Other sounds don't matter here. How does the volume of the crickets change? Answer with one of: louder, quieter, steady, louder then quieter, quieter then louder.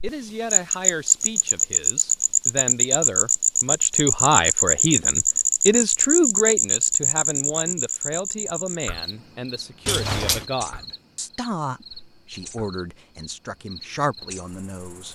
quieter.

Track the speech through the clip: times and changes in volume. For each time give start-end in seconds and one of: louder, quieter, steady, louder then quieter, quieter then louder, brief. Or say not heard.
0.0-15.1 louder then quieter.